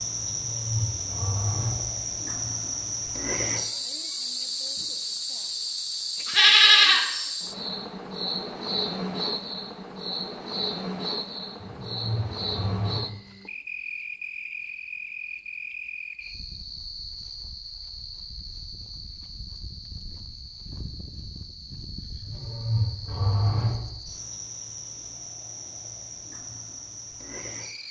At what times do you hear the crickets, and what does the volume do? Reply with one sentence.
The crickets can be heard from 0.0 to 27.8 s, getting quieter.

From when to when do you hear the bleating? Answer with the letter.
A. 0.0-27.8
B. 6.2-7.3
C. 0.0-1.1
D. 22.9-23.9
B.